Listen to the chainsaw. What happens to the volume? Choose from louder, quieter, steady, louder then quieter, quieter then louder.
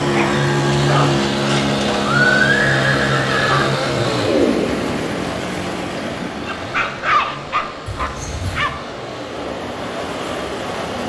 quieter.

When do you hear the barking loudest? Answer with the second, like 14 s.
7 s.